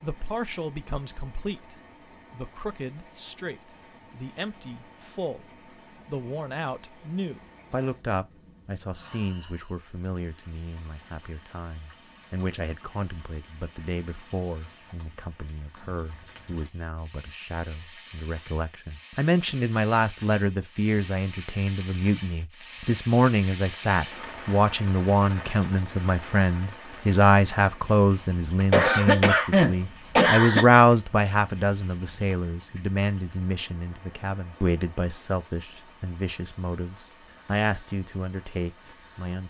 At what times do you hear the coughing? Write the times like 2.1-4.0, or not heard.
28.7-30.6.